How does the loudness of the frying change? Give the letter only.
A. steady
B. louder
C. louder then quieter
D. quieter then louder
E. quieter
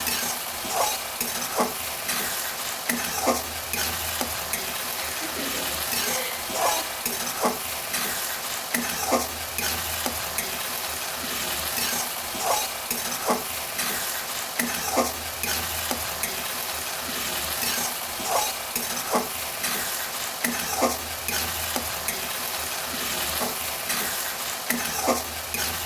A.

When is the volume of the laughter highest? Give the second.
7 s.